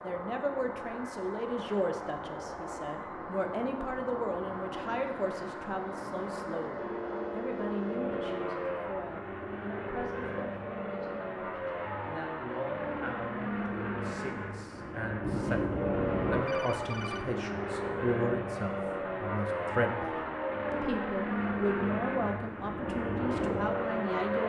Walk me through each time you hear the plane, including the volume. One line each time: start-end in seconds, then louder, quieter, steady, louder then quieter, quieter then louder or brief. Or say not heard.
0.0-24.4 louder.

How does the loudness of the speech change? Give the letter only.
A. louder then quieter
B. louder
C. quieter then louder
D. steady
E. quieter
C.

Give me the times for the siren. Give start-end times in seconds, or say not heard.
not heard.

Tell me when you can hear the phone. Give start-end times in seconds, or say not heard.
6.8-8.8, 15.2-17.2.